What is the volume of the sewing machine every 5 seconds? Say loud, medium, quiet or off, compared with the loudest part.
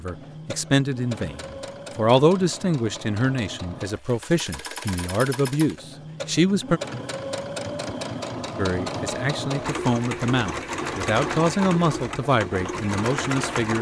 medium, loud, loud.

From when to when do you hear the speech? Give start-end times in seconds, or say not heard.
0.0-6.8, 8.6-13.7.